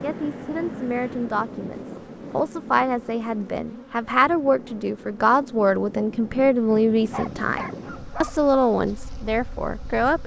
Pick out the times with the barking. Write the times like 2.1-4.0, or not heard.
7.1-8.5.